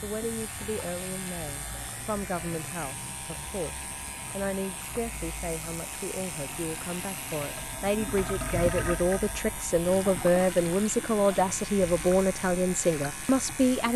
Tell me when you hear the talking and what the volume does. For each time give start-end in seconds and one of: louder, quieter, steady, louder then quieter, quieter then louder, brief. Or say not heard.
0.0-13.9 louder.